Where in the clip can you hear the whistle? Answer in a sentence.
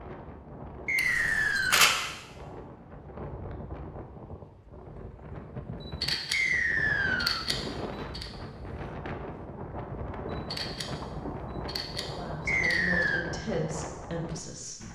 You can hear the whistle from 0.8 to 1.9 s, from 6.3 to 7.5 s and from 12.4 to 13.2 s.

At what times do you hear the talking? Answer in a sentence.
The talking can be heard from 12.0 to 14.9 s.